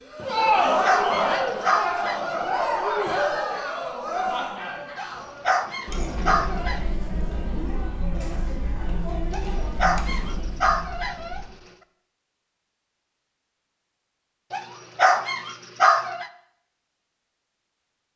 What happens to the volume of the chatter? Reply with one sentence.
The loudness of the chatter goes down.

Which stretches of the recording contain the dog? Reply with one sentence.
You can hear the dog from 0.3 to 2.5 s, from 5.0 to 6.8 s, from 9.3 to 11.4 s and from 14.5 to 16.3 s.